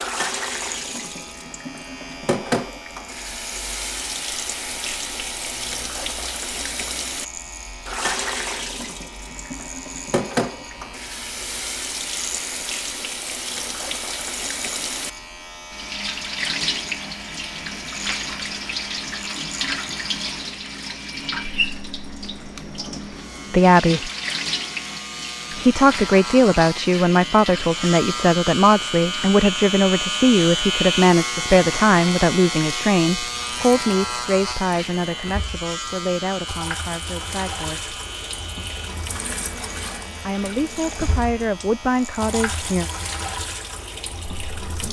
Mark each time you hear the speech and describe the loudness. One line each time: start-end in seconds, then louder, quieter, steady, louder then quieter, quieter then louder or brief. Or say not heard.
23.5-24.1 brief
25.5-38.0 quieter
40.2-42.9 brief.